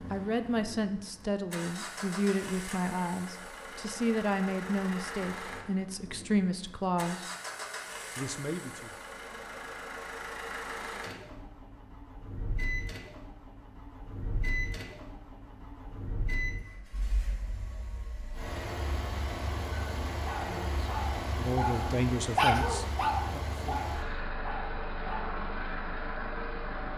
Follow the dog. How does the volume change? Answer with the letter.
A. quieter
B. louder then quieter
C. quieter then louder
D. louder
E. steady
B.